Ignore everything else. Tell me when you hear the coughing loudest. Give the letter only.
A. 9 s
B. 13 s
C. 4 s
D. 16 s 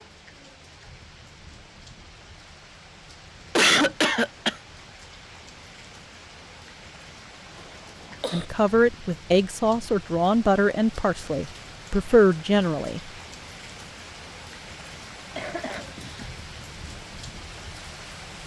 C.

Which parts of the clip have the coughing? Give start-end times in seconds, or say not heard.
3.5-4.5, 7.5-8.4, 15.3-16.4.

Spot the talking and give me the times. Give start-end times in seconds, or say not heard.
8.3-13.0.